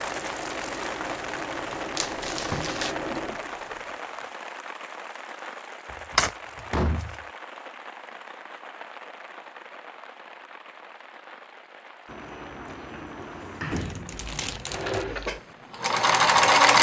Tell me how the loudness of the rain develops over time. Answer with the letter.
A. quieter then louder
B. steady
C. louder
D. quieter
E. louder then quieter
D.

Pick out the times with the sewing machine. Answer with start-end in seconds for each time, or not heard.
0.0-4.2, 14.7-16.7.